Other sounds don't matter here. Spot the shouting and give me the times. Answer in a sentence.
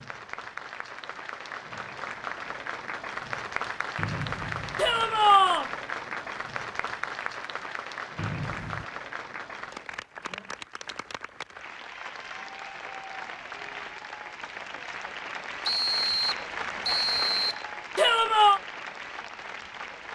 The shouting can be heard from 4.8 to 5.7 s and from 17.9 to 18.6 s.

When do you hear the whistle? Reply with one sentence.
You can hear the whistle from 4.0 to 5.0 s, from 8.2 to 8.8 s and from 15.7 to 17.6 s.